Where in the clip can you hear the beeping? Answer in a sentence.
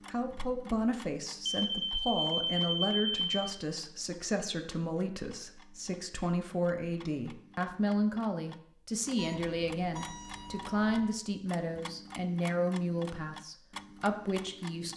The beeping can be heard from 1.4 to 3.4 s and from 9.2 to 11.2 s.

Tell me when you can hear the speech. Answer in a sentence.
The speech can be heard from 0.1 to 14.9 s.